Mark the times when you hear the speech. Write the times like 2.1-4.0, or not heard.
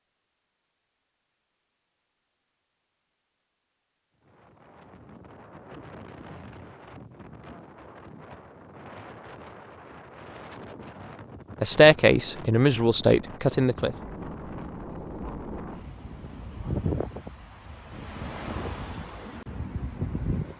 11.6-13.9.